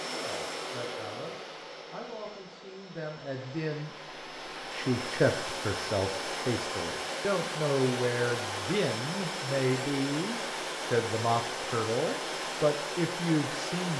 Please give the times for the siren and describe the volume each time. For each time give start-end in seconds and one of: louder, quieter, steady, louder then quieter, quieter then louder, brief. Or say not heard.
not heard.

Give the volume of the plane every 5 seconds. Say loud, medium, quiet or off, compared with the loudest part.
medium, loud, loud.